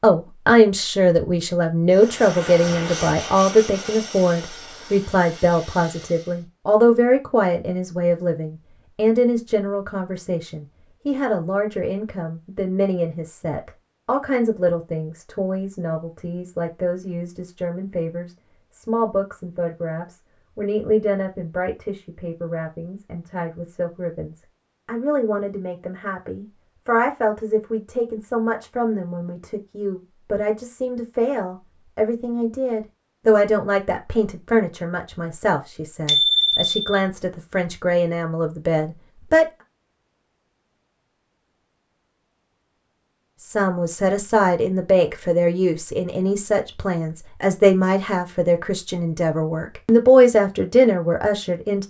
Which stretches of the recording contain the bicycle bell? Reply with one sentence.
The bicycle bell can be heard from 36.0 to 37.0 s.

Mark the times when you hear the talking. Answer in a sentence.
You can hear the talking from 0.0 to 39.5 s and from 43.4 to 51.8 s.